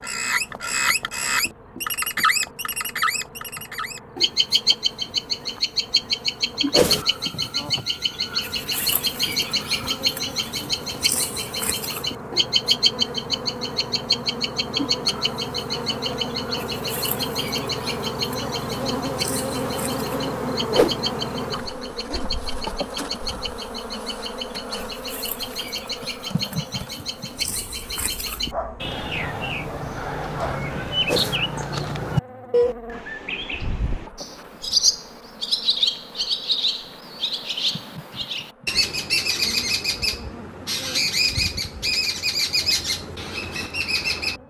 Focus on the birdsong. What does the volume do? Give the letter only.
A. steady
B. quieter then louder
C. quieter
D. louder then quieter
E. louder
B.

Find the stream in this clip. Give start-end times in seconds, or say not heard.
not heard.